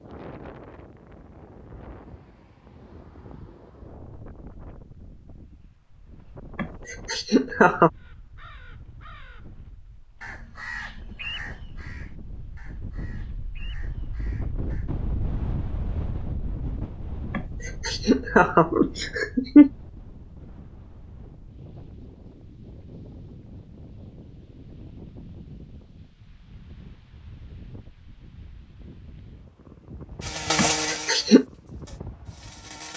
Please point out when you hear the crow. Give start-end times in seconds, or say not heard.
8.0-14.9.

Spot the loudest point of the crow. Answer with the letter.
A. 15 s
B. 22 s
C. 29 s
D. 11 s
D.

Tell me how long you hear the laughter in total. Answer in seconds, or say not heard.
5 s.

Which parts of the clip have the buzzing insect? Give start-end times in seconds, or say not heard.
30.2-32.9.